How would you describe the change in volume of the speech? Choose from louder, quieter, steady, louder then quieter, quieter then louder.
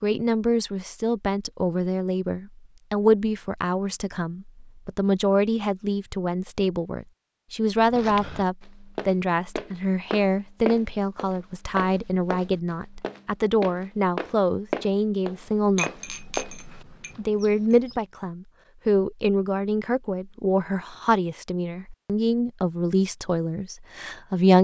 steady.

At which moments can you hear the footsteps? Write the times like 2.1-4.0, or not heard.
7.8-17.2.